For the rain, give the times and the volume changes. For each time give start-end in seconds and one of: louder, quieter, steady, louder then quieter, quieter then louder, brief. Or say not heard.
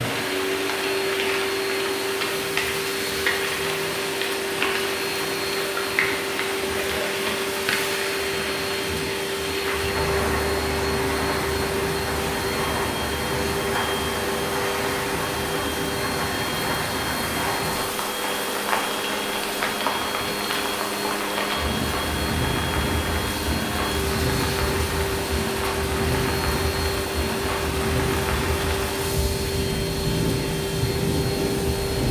0.0-32.0 steady.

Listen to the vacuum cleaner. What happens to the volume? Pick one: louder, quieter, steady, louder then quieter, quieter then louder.
steady.